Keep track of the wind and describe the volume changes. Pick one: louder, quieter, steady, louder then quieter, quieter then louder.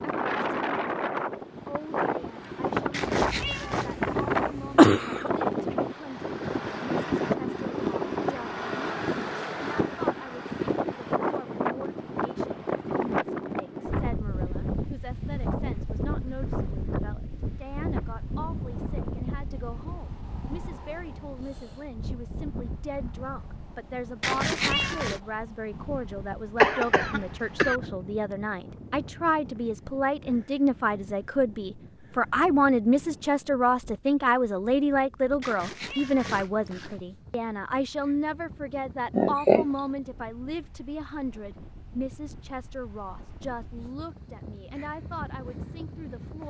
quieter.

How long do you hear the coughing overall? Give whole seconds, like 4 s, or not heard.
4 s.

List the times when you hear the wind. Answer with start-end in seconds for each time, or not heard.
0.0-46.4.